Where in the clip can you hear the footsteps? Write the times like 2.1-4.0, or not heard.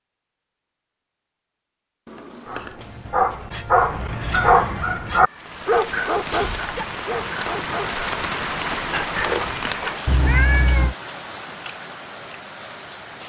not heard.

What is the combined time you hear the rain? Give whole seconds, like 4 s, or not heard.
8 s.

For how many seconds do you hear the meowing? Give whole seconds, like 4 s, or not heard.
3 s.